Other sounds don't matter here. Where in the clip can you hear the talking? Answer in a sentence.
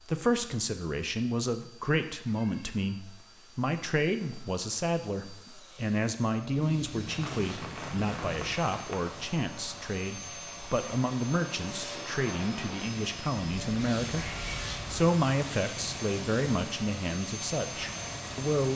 You can hear the talking from 0.0 to 18.7 s.